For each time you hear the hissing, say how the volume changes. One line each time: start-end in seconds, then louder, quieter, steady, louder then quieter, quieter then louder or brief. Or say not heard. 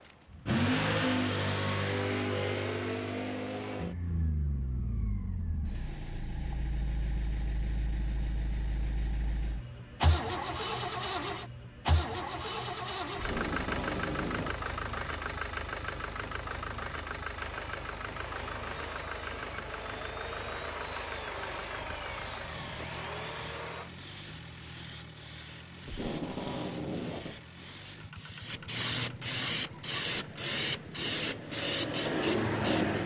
18.2-33.0 louder.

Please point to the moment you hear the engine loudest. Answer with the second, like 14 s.
1 s.